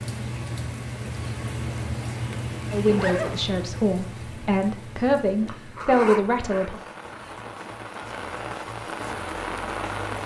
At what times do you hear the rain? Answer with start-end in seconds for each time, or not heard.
0.0-10.2.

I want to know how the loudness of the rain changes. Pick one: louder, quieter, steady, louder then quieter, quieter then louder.
quieter then louder.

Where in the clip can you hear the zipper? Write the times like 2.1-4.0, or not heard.
2.9-3.4, 5.5-7.3.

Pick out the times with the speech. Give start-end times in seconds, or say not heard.
2.7-6.8.